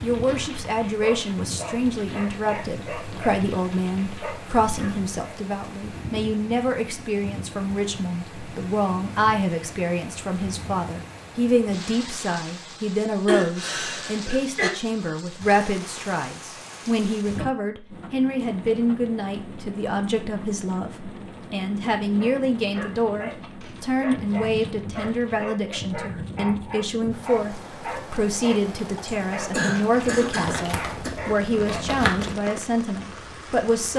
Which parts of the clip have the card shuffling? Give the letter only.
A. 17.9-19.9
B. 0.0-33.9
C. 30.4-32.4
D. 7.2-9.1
C.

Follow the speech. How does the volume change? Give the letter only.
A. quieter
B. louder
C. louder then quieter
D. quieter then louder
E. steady
E.